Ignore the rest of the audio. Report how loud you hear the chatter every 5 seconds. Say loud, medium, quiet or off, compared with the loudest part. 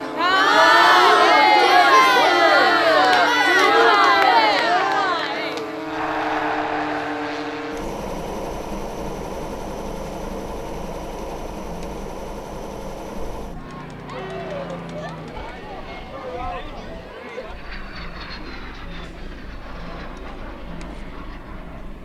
loud, quiet, quiet, quiet, quiet.